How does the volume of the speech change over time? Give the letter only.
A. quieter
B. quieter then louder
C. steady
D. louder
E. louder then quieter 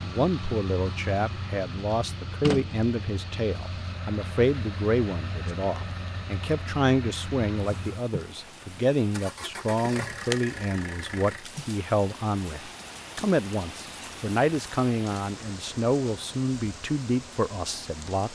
C.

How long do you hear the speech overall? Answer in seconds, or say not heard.
18 s.